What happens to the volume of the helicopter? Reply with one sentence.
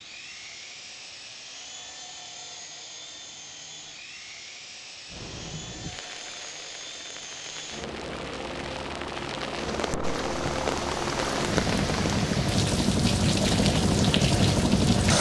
The volume of the helicopter goes up.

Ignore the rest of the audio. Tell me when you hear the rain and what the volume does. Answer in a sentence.
You can hear the rain from 5.1 to 15.1 s, getting louder.